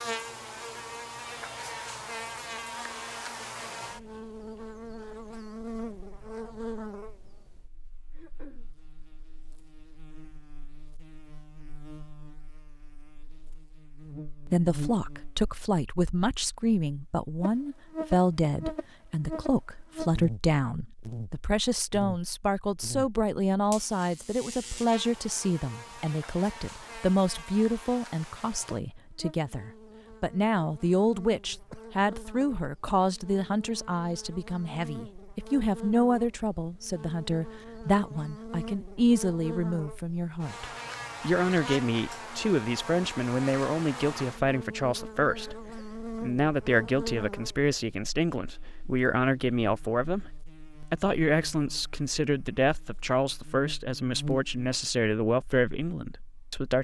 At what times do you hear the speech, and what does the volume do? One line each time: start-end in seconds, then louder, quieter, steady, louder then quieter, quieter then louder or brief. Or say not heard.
14.4-56.8 steady.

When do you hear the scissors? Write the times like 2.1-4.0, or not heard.
not heard.